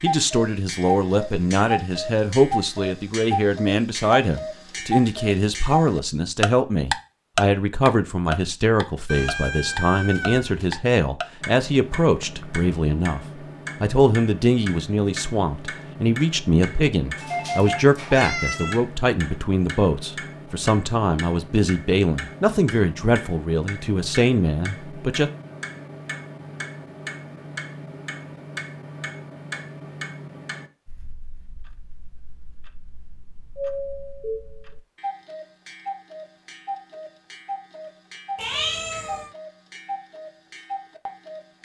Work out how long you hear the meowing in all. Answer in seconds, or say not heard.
4 s.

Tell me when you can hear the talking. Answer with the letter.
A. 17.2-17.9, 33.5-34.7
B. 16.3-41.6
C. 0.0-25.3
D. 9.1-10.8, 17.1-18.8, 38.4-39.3
C.